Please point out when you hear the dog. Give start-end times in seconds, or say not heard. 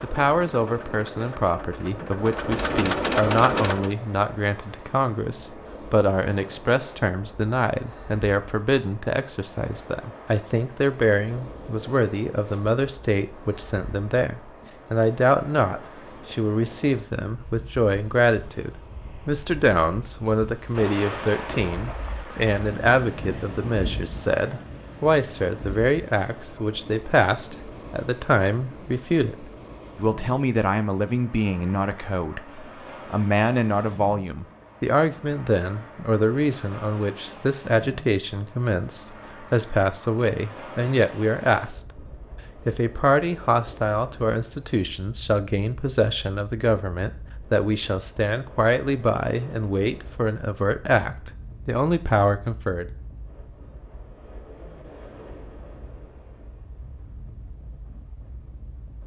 not heard.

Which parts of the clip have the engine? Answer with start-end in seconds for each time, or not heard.
0.0-4.0.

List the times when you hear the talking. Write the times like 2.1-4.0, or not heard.
0.0-42.0, 42.6-52.9.